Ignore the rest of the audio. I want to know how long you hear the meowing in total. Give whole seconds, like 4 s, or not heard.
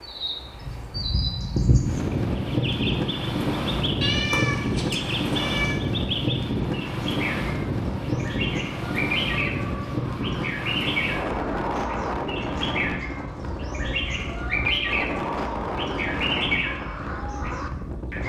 2 s.